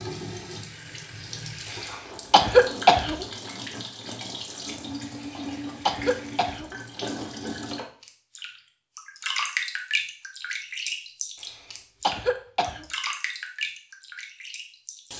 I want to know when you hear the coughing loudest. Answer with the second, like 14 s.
3 s.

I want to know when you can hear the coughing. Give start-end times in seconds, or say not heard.
1.7-3.2, 5.2-6.8, 11.4-12.8.